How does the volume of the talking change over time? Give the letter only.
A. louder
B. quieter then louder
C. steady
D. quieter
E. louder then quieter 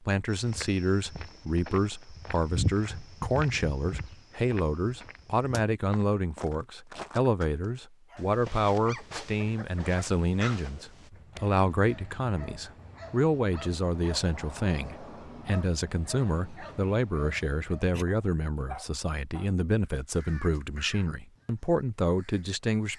C.